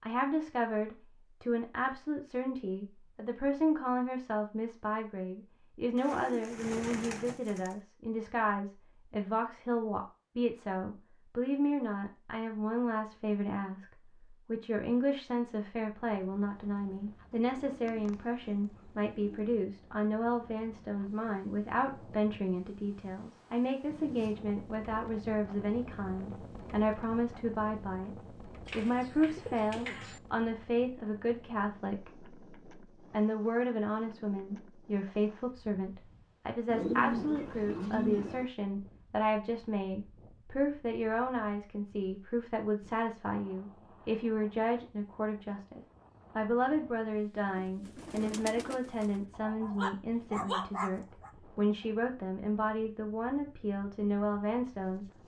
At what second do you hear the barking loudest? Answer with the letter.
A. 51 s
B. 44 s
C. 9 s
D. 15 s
A.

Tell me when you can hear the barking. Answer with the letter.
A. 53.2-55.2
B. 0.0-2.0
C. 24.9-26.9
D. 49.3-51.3
D.